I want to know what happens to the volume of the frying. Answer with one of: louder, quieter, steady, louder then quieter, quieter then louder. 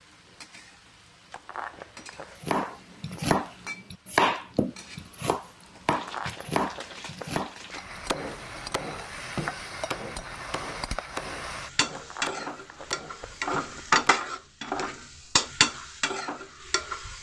louder.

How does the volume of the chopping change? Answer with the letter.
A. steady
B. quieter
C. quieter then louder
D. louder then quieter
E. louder
B.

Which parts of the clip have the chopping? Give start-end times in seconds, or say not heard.
2.4-14.3.